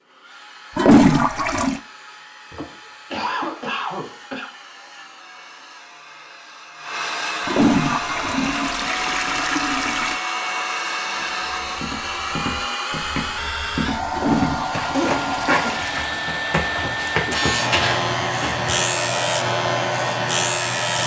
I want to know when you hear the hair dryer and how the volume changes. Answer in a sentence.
You can hear the hair dryer from 0.0 to 21.0 s, getting louder.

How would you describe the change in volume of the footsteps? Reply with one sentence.
The loudness of the footsteps goes up.